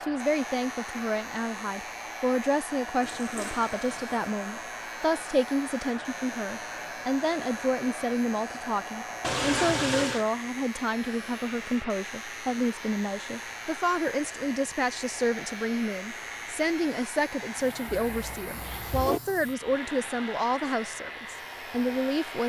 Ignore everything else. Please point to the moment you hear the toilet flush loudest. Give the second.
10 s.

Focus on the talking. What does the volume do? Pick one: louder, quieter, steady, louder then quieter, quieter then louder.
steady.